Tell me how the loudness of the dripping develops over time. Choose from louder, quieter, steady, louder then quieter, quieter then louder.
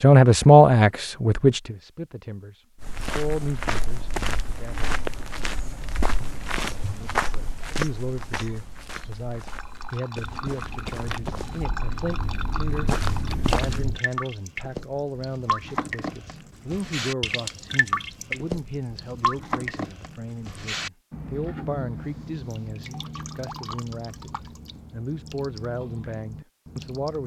louder then quieter.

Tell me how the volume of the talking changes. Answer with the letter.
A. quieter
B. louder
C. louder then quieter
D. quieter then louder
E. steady
A.